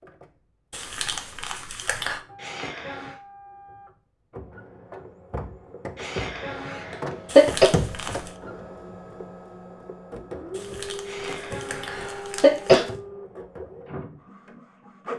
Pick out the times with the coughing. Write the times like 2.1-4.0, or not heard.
2.4-3.1, 6.0-7.7, 11.1-12.8.